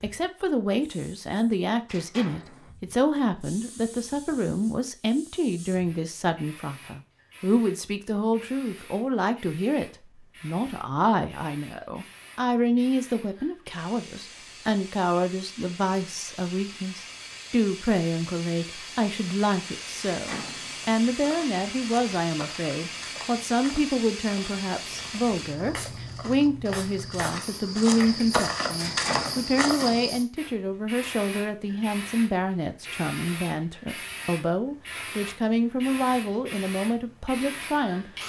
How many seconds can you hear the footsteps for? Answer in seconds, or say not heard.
9 s.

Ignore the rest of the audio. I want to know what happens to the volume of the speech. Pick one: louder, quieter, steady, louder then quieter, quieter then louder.
steady.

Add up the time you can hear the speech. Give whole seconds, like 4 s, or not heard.
38 s.